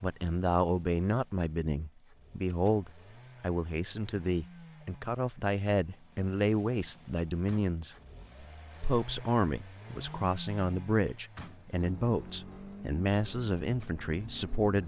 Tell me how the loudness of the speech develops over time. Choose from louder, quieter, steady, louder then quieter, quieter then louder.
steady.